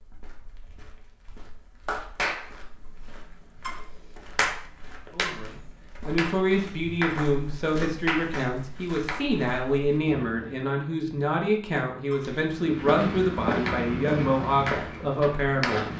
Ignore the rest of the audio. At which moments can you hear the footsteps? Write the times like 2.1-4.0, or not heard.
0.0-10.7, 12.5-15.9.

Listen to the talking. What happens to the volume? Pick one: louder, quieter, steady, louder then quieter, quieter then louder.
steady.